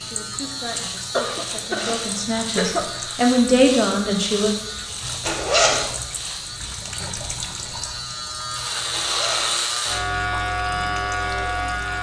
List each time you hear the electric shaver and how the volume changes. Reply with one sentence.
You can hear the electric shaver from 0.0 to 11.9 s, getting louder.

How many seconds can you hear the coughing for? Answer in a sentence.
You can hear the coughing for 2 seconds altogether.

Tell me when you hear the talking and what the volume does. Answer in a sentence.
The talking can be heard from 0.0 to 4.5 s, getting louder.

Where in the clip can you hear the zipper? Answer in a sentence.
You can hear the zipper from 1.5 to 2.1 s, from 5.2 to 5.8 s and from 8.9 to 9.6 s.